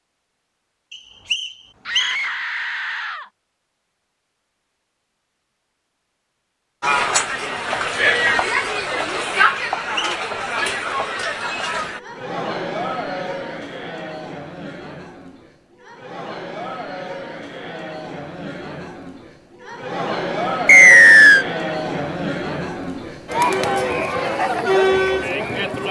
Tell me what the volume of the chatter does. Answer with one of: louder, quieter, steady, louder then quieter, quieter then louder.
quieter then louder.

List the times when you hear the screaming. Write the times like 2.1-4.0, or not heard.
1.9-3.3.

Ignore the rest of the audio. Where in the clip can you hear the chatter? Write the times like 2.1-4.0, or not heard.
6.8-25.8.